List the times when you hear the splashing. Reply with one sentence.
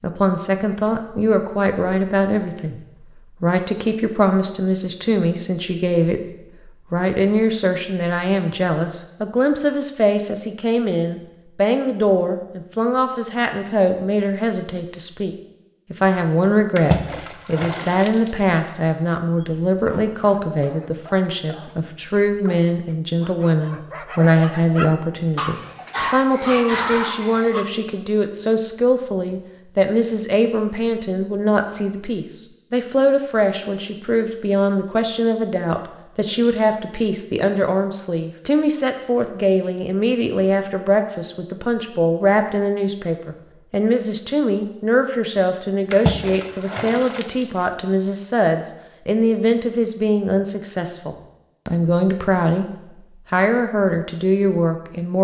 You can hear the splashing from 16.8 to 18.8 s and from 45.9 to 47.9 s.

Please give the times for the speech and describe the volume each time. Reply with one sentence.
You can hear the speech from 0.0 to 6.2 s, at a steady volume; from 6.9 to 52.6 s, at a steady volume; and briefly from 53.3 to 55.2 s.